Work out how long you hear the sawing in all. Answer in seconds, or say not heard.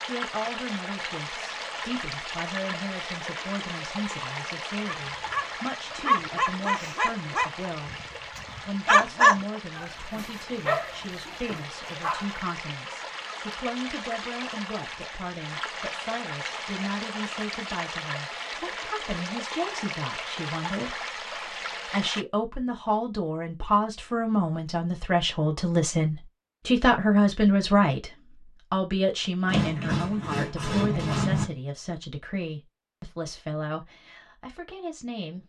2 s.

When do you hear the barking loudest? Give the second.
9 s.